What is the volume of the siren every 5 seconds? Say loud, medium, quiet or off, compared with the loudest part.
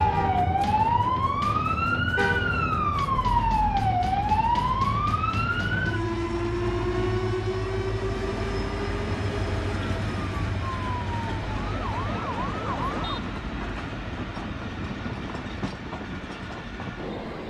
loud, medium, medium, off.